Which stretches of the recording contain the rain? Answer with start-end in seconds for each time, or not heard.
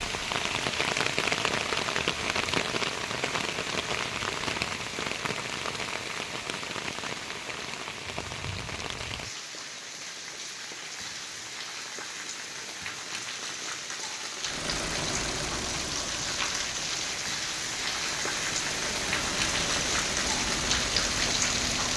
0.0-21.9.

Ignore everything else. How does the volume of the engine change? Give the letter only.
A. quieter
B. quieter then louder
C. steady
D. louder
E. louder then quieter
B.